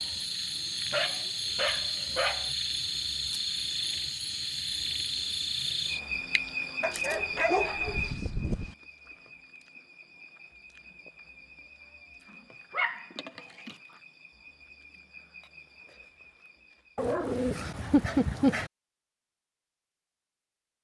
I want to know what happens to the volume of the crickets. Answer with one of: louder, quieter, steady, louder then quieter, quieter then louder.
quieter.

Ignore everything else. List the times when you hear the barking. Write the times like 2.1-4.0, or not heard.
0.9-2.5, 6.8-8.8, 12.7-13.7, 16.9-18.7.